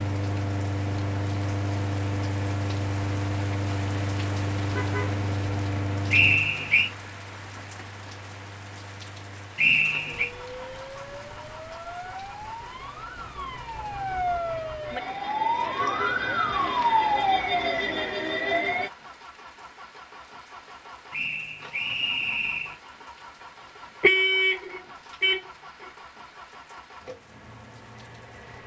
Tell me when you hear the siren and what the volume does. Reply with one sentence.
You can hear the siren from 10.1 to 18.9 s, getting louder.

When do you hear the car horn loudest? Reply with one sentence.
The loudest moment of the car horn is at 24 seconds.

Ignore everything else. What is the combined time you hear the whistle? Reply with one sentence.
You can hear the whistle for 3 seconds altogether.